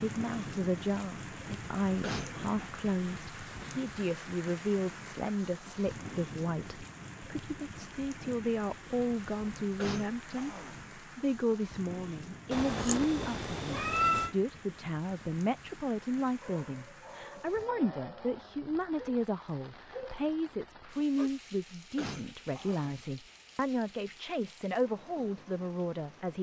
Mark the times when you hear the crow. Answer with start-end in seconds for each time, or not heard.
not heard.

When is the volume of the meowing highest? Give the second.
14 s.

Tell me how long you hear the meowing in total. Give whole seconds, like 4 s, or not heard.
2 s.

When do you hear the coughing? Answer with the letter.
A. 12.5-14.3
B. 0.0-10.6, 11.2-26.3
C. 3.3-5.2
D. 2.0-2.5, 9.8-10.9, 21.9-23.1
D.